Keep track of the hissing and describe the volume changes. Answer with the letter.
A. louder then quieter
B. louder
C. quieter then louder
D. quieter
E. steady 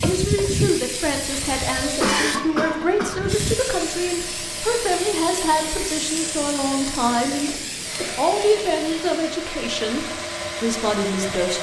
D.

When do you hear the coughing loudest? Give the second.
2 s.